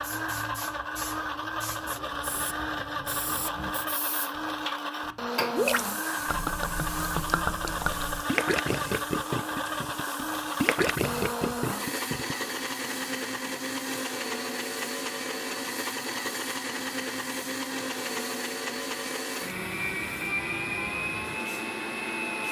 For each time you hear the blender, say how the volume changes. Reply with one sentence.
The blender can be heard from 0.0 to 22.4 s, at a steady volume.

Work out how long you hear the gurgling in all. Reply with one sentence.
You can hear the gurgling for 7 seconds altogether.